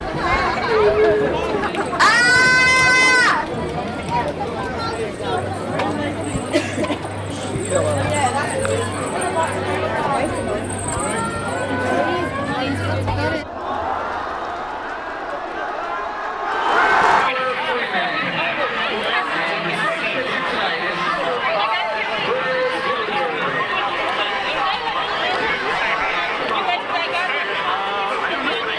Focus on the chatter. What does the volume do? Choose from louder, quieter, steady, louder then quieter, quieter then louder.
steady.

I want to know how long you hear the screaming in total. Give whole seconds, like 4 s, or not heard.
3 s.